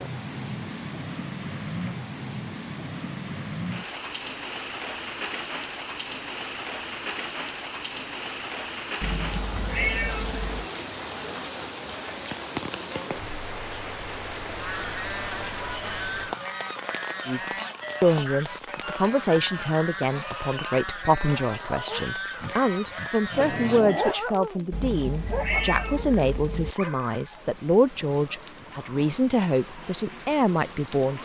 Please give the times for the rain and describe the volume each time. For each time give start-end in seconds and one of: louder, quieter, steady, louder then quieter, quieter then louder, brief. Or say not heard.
0.0-31.1 quieter.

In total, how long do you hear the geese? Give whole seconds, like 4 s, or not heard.
10 s.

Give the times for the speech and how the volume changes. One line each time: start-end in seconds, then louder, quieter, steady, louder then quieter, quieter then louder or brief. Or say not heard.
17.2-31.1 steady.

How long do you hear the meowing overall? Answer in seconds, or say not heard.
4 s.